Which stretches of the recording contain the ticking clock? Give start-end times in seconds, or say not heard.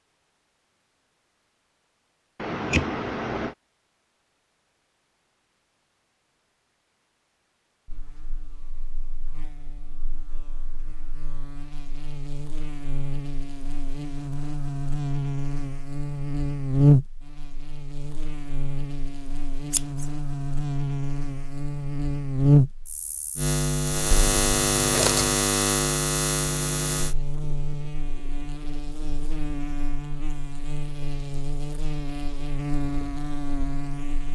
not heard.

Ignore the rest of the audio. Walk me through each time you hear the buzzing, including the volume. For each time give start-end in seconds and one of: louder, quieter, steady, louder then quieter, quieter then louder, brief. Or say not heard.
7.8-34.3 louder then quieter.